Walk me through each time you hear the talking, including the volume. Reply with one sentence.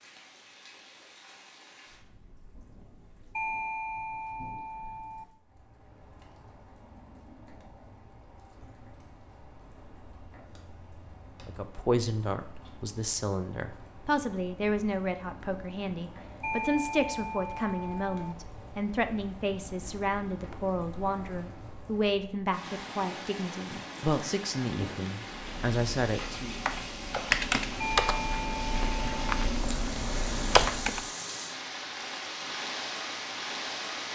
You can hear the talking from 11.4 to 26.6 s, at a steady volume.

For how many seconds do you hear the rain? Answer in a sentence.
You can hear the rain for 34 seconds altogether.